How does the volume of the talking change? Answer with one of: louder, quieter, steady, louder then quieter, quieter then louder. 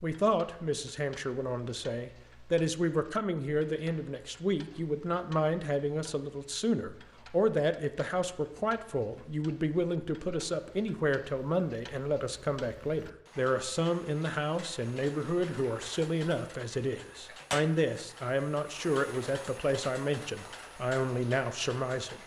steady.